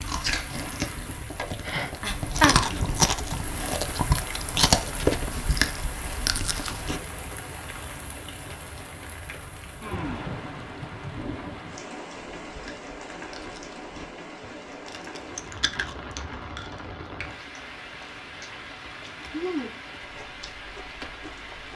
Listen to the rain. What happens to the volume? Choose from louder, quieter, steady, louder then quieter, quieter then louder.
quieter.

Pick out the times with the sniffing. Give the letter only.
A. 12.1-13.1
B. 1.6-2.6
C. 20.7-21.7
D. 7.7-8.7
B.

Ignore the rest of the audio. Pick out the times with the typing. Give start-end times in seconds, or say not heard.
not heard.